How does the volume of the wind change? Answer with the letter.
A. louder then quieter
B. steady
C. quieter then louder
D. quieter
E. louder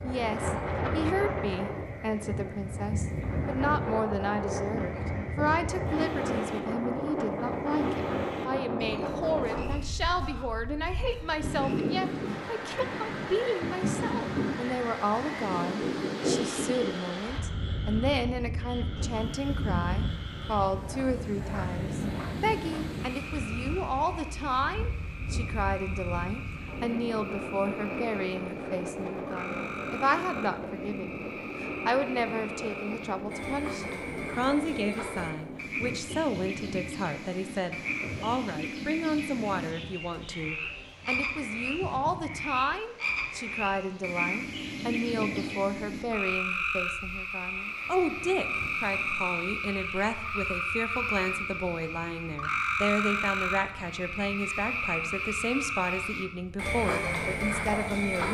D.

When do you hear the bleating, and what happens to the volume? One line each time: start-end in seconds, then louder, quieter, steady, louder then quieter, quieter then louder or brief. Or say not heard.
not heard.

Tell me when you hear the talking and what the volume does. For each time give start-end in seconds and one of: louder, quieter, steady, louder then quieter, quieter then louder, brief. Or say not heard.
0.0-58.2 steady.